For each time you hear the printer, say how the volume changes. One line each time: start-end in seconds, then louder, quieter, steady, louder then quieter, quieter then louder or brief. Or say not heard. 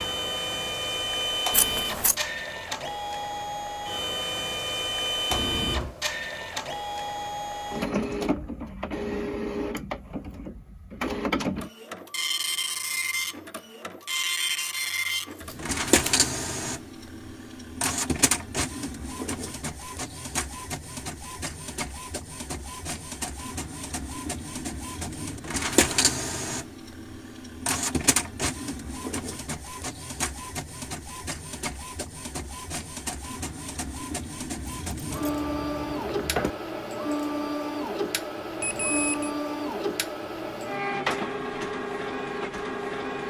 0.0-43.2 steady.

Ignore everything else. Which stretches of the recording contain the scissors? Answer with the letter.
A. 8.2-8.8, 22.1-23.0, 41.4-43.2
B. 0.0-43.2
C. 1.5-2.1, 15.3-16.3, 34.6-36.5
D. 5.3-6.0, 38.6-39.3
C.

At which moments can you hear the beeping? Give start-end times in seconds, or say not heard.
5.3-6.0, 38.6-39.3.